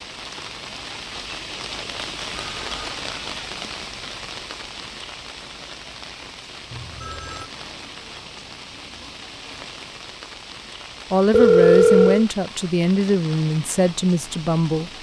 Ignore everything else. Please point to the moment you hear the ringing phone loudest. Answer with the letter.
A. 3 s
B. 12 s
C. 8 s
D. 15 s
B.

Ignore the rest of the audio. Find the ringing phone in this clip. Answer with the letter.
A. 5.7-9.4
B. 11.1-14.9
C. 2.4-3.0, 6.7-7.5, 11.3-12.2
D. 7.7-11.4
C.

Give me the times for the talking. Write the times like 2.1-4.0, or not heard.
11.1-14.9.